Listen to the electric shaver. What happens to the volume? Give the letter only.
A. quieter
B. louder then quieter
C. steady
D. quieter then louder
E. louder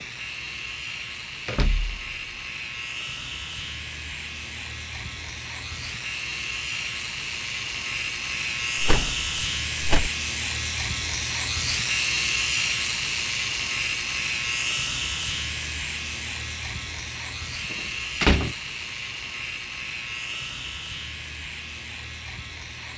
B.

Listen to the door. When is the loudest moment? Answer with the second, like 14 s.
18 s.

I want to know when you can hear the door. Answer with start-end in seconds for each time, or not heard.
1.4-2.0, 8.8-10.1, 17.7-18.6.